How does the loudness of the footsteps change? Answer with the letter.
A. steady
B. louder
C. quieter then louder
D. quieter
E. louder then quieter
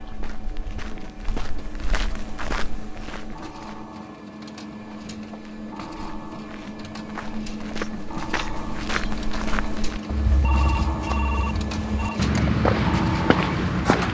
B.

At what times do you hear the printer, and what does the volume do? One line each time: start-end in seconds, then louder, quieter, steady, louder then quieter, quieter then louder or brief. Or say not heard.
0.0-14.1 louder.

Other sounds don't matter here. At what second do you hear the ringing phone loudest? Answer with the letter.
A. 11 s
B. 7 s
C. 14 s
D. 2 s
A.